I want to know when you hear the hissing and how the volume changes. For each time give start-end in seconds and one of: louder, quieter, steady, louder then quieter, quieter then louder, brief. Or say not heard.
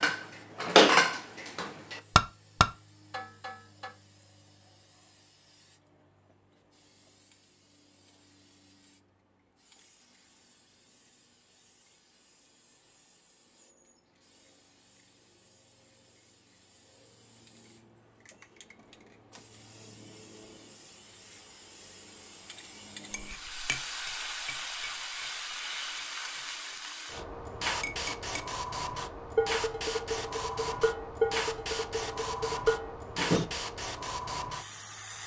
0.1-35.2 louder.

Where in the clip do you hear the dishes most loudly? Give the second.
1 s.